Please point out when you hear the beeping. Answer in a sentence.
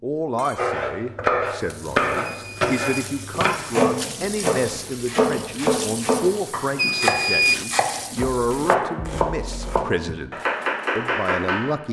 The beeping can be heard from 2.2 to 3.0 s and from 6.8 to 7.7 s.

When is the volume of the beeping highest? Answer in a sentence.
The loudest moment of the beeping is at 7 seconds.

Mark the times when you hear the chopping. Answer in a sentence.
You can hear the chopping from 0.6 to 11.8 s.